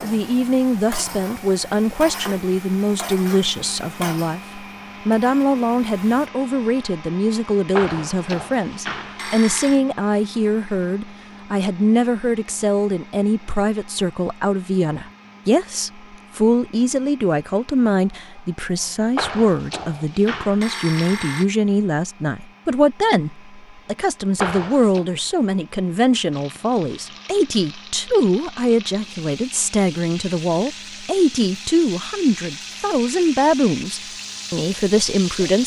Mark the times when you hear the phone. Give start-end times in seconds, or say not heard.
7.8-9.8, 19.1-21.4, 24.4-25.1.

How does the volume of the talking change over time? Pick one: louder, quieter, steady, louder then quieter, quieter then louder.
steady.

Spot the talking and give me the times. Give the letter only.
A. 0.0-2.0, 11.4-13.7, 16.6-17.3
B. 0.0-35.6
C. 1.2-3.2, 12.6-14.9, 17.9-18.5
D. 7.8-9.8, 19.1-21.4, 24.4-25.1
B.